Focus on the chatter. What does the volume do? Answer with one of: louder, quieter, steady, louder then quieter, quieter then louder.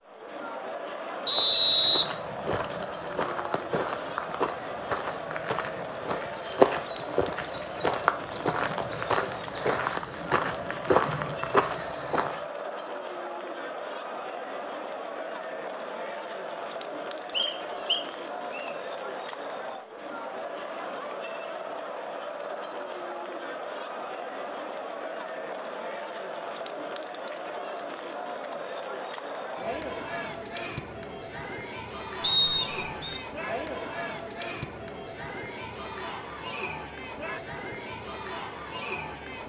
steady.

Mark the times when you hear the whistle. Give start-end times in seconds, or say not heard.
1.2-2.8, 17.3-18.7, 32.2-33.2.